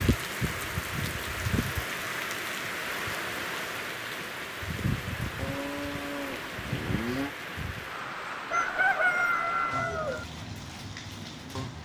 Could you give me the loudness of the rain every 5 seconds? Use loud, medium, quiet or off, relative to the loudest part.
loud, loud, medium.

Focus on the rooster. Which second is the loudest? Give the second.
9 s.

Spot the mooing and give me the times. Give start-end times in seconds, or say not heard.
5.3-7.3.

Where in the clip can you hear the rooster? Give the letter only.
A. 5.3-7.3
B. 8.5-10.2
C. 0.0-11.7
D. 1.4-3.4
B.